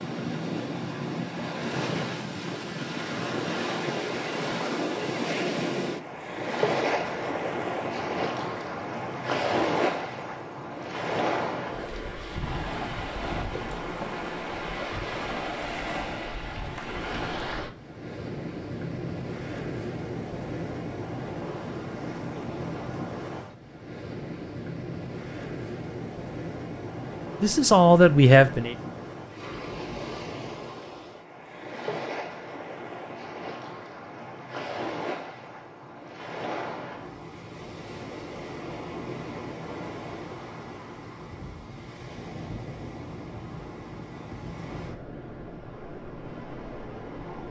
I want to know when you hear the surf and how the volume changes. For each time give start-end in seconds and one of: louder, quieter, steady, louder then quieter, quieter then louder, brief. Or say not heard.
0.0-47.4 quieter.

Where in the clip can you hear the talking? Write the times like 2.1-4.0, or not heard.
27.4-28.8.